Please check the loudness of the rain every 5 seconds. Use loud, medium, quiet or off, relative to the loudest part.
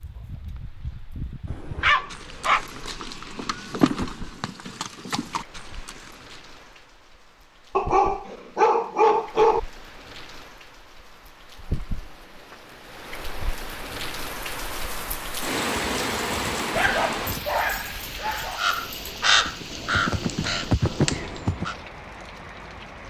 quiet, quiet, medium, loud, medium.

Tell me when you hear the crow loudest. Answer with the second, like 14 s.
19 s.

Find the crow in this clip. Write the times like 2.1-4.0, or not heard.
18.6-21.8.